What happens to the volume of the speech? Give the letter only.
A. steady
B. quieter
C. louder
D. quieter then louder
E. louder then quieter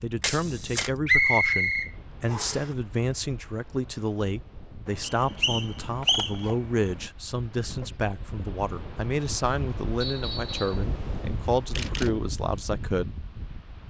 A.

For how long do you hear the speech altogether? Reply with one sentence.
You can hear the speech for 13 seconds altogether.